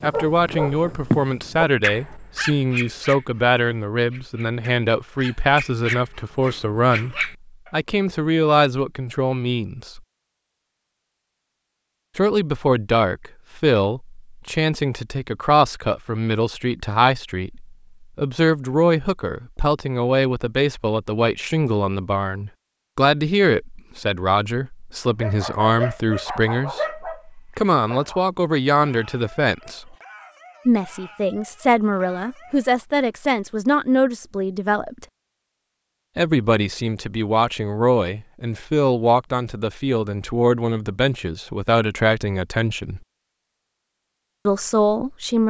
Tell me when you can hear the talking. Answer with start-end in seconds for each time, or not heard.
0.0-10.0, 12.2-29.9, 30.6-35.0, 36.1-43.0, 44.5-45.4.